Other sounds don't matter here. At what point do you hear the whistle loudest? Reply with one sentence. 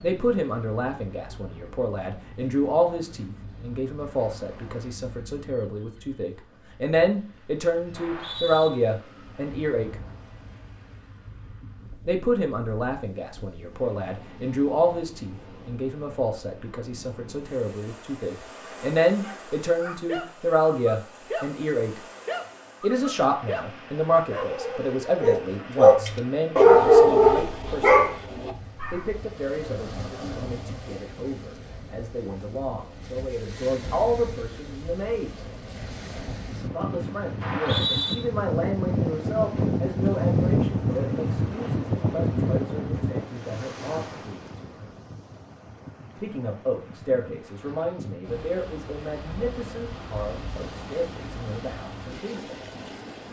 The volume of the whistle peaks at 38 seconds.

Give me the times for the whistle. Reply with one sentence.
The whistle can be heard from 8.0 to 8.7 s and from 37.4 to 38.1 s.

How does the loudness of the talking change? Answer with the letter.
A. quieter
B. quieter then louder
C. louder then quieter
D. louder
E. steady
A.